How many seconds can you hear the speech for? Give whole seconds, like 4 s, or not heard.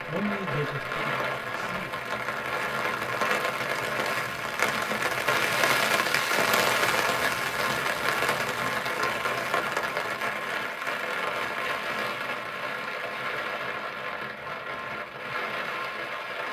2 s.